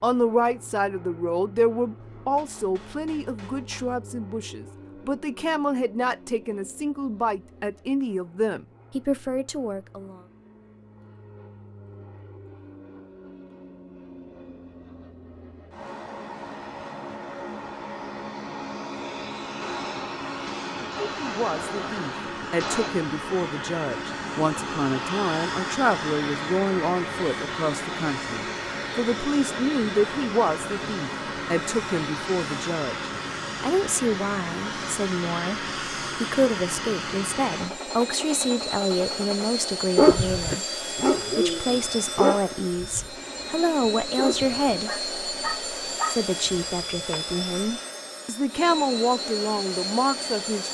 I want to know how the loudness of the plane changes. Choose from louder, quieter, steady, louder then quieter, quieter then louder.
louder.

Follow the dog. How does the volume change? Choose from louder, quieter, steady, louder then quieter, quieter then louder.
quieter then louder.